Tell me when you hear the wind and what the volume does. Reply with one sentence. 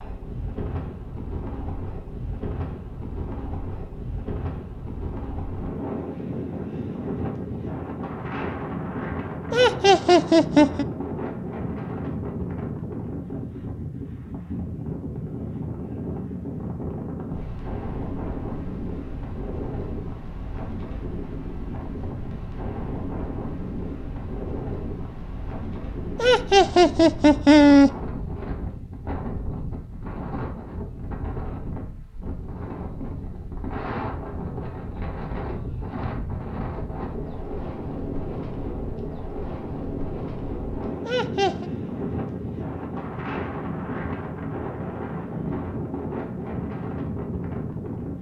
The wind can be heard from 0.0 to 48.1 s, at a steady volume.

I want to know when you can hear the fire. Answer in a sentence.
The fire can't be heard in this clip.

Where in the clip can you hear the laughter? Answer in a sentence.
You can hear the laughter from 9.5 to 10.8 s, from 26.1 to 27.9 s and from 41.0 to 41.6 s.